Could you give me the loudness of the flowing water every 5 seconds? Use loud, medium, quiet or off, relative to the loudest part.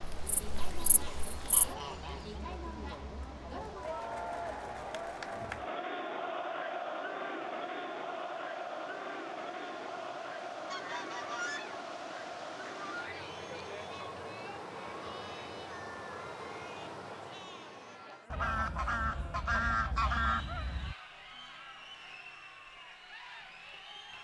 medium, medium, loud, loud, off.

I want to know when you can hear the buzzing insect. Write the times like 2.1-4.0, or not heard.
0.0-1.7.